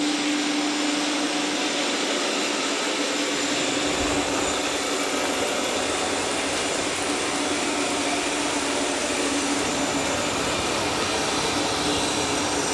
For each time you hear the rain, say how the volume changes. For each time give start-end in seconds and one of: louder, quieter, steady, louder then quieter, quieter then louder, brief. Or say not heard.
0.0-12.6 steady.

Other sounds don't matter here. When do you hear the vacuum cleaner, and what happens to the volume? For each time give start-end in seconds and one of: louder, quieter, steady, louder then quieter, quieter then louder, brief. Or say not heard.
0.0-12.6 steady.